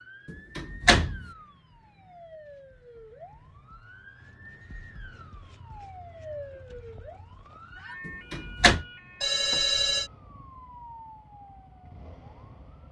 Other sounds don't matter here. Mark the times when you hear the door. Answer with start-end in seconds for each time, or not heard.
0.2-1.2, 8.1-8.8.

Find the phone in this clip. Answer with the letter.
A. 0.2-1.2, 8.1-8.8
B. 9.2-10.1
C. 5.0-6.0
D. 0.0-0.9
B.